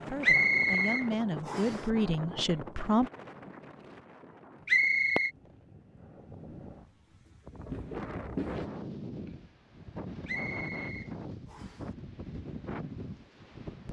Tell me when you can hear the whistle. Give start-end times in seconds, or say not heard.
0.2-1.8, 4.7-5.3, 10.2-11.8.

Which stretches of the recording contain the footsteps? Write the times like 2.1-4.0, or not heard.
not heard.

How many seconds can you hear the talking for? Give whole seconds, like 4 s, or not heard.
3 s.